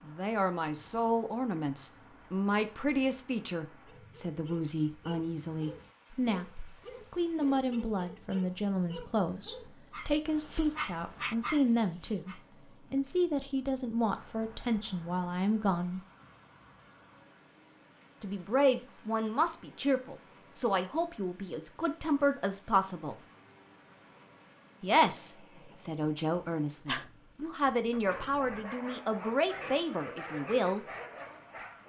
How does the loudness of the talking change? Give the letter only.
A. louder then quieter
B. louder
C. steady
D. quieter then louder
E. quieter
C.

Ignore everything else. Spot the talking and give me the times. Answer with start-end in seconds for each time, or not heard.
0.1-16.0, 18.2-23.1, 24.8-30.9.